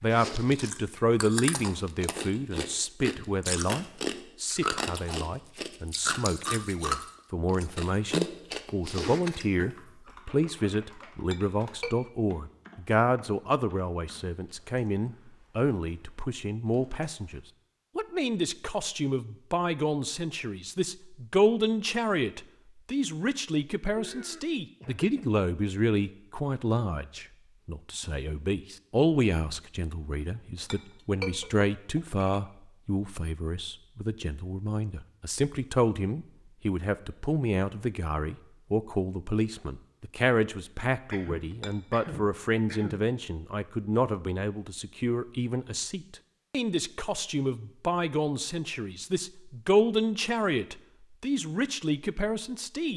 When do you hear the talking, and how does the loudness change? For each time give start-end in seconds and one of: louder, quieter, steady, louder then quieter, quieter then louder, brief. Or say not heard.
0.0-52.9 steady.